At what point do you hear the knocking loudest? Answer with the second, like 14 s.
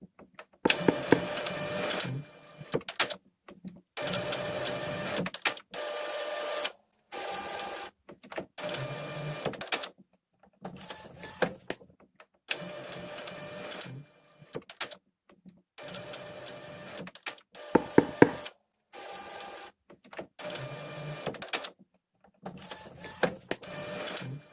18 s.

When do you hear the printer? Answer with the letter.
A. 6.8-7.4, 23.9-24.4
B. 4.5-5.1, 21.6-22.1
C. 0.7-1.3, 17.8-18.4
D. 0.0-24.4
D.